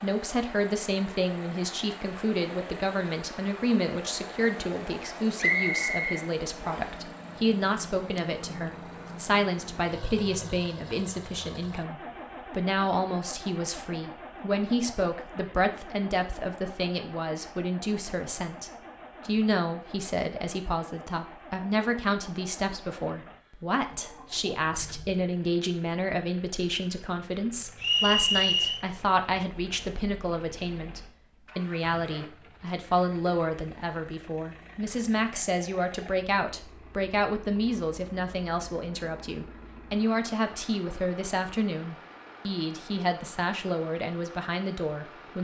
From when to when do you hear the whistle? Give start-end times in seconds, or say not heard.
5.4-7.0, 27.8-28.8.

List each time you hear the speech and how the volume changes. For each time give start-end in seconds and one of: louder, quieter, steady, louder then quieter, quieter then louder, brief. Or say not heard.
0.0-45.3 steady.